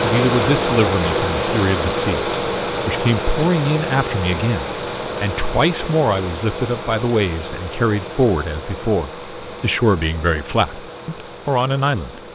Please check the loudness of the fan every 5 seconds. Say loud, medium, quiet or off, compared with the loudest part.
loud, medium, quiet.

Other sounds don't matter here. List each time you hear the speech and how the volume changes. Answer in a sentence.
The speech can be heard from 0.0 to 12.2 s, at a steady volume.